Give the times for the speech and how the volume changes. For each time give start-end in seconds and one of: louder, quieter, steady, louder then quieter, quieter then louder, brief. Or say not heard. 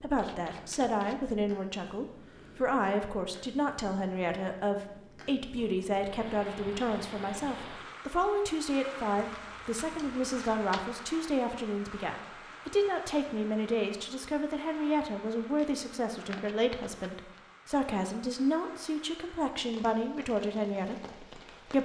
0.0-21.8 steady.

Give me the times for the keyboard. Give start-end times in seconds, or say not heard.
not heard.